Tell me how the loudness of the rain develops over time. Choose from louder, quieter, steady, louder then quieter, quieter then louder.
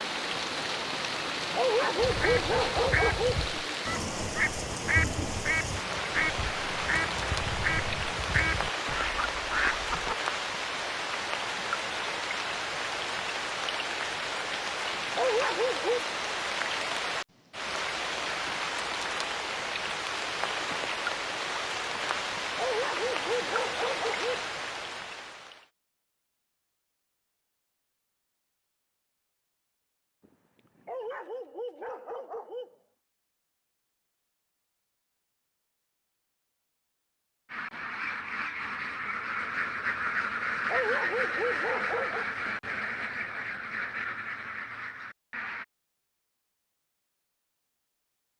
steady.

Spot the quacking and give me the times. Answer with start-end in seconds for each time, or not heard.
1.9-10.2, 37.5-45.6.